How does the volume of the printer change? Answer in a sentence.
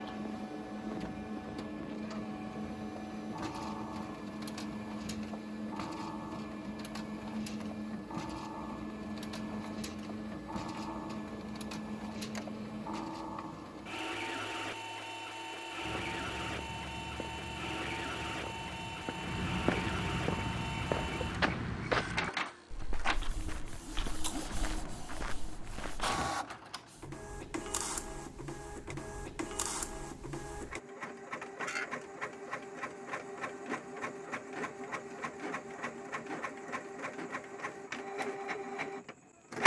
The volume of the printer stays about the same.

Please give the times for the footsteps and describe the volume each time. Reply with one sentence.
You can hear the footsteps from 15.8 to 26.2 s, getting louder then quieter.